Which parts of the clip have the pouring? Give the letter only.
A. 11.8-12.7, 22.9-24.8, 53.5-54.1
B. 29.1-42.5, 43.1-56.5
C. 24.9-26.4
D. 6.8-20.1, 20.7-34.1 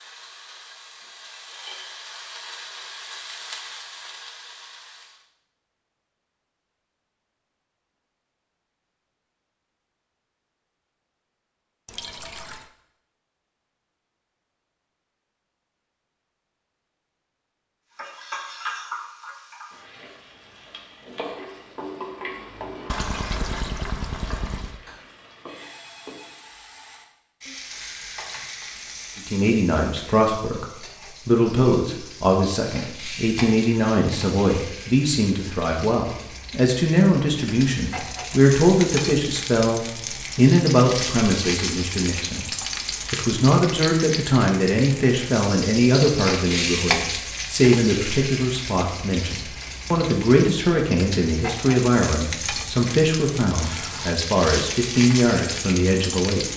A.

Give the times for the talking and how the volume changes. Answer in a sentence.
You can hear the talking from 29.1 to 42.5 s, at a steady volume; and from 43.1 to 56.5 s, at a steady volume.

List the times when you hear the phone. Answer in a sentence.
You can hear the phone from 24.9 to 26.4 s.